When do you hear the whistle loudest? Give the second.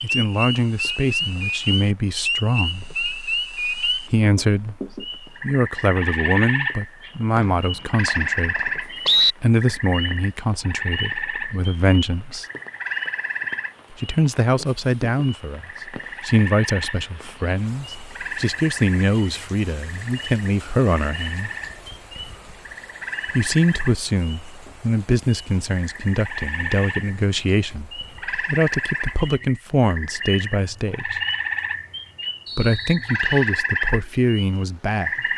9 s.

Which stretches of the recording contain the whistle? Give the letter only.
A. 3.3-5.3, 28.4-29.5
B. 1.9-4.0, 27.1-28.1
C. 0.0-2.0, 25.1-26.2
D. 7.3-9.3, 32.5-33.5
D.